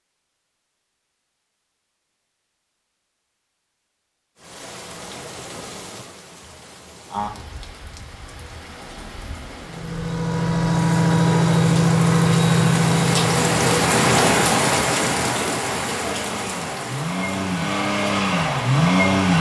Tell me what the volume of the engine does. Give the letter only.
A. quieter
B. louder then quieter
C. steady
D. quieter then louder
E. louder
D.